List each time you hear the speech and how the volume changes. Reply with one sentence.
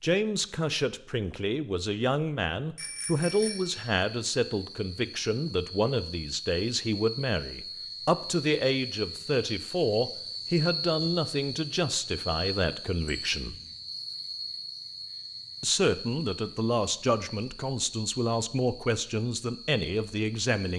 You can hear the speech from 0.0 to 13.6 s, at a steady volume; and from 15.6 to 20.7 s, at a steady volume.